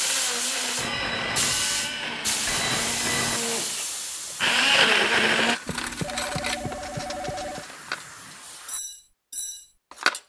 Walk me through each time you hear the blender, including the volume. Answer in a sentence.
You can hear the blender from 0.0 to 5.5 s, getting louder.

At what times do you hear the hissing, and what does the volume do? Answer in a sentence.
The hissing can be heard from 0.0 to 8.8 s, getting quieter.